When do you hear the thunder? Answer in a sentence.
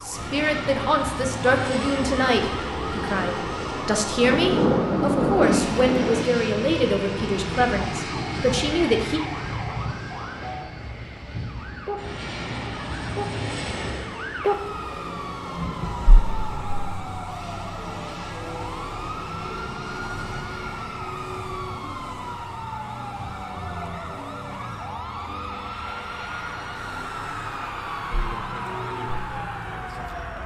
The thunder can be heard from 4.2 to 6.2 s and from 15.6 to 16.4 s.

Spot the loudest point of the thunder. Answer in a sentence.
The loudest moment of the thunder is at 5 seconds.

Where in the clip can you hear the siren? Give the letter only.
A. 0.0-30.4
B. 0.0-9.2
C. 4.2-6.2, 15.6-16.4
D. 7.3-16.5
A.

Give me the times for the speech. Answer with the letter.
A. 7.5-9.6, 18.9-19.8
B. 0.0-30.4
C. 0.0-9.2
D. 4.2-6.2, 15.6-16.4
C.